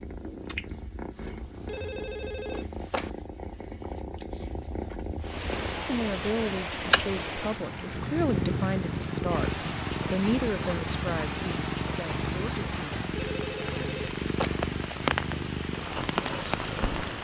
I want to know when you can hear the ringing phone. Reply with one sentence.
The ringing phone can be heard from 1.6 to 3.1 s and from 13.2 to 14.6 s.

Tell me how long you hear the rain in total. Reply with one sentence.
The rain can be heard for 12 seconds in total.